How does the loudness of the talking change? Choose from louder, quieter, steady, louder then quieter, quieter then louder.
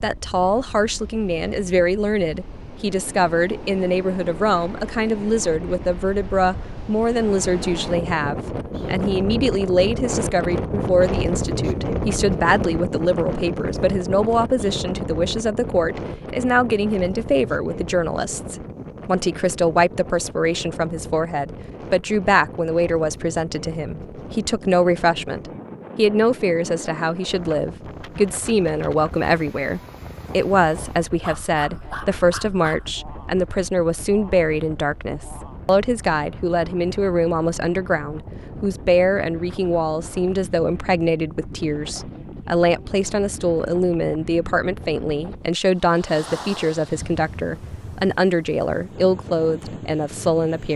steady.